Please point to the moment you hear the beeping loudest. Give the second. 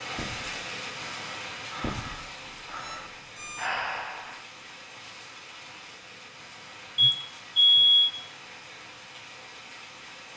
8 s.